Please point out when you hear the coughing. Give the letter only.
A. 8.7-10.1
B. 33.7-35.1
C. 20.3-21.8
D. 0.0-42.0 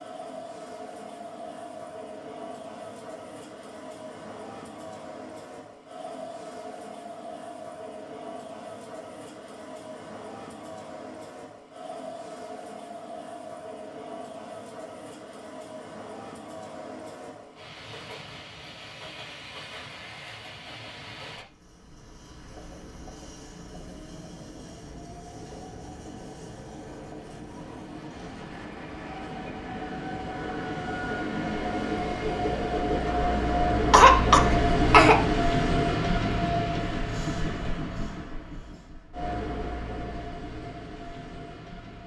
B.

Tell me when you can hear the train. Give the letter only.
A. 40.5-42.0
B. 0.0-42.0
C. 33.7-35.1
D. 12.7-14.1
B.